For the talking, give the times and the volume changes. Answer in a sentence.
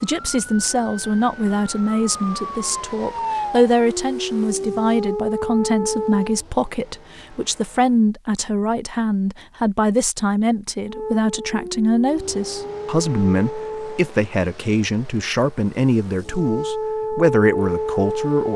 You can hear the talking from 0.0 to 18.5 s, at a steady volume.